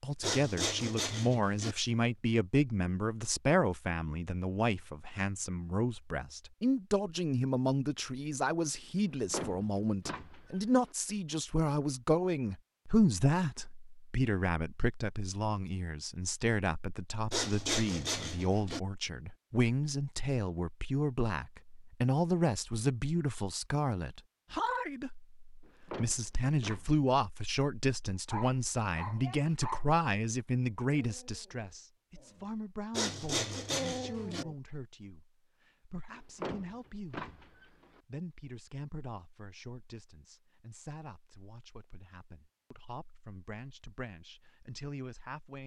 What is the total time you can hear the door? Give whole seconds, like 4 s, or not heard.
5 s.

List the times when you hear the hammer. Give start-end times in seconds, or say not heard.
not heard.